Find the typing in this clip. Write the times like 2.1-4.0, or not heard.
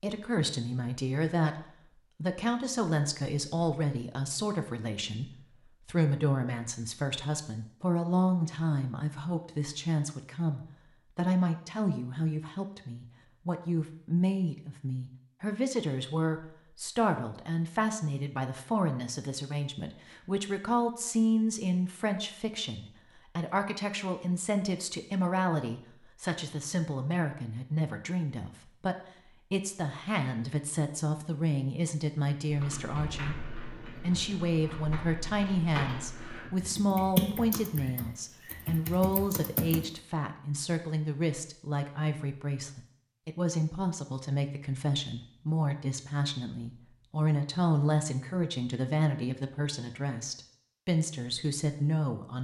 32.5-39.9.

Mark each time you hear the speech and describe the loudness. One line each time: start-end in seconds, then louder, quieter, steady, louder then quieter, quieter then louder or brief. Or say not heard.
0.0-1.6 brief
2.2-33.4 steady
34.0-52.4 steady.